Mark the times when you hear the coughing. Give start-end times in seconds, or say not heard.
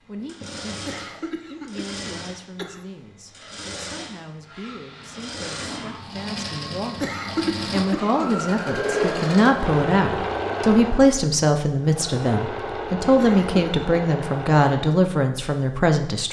0.8-2.9, 7.0-8.3, 13.2-13.9.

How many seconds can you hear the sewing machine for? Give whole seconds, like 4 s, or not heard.
15 s.